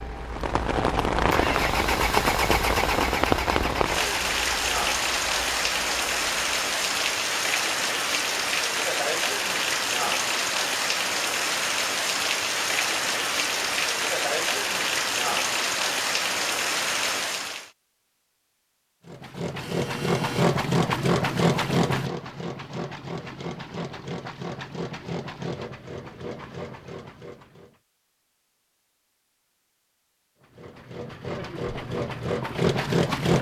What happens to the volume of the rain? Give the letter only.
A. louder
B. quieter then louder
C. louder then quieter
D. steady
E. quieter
D.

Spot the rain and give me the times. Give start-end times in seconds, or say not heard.
0.0-17.7.